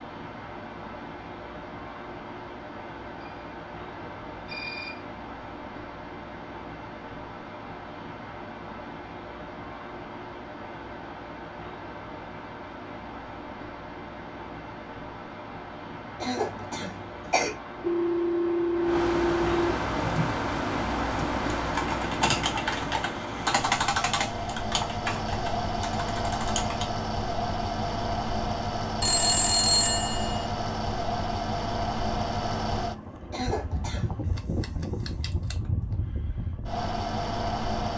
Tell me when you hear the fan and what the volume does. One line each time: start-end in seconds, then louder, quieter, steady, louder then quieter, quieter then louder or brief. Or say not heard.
0.0-37.9 louder.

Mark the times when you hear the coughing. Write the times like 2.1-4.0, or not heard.
16.2-17.5, 33.3-34.2.